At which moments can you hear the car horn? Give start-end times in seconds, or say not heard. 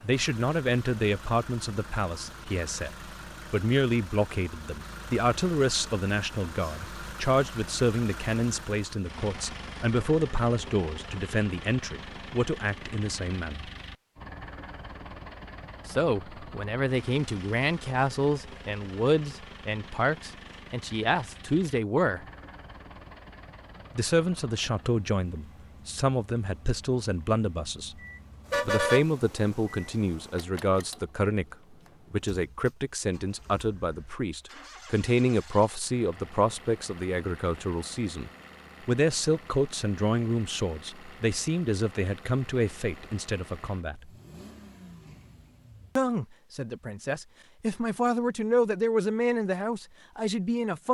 28.0-29.8.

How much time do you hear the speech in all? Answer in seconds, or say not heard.
44 s.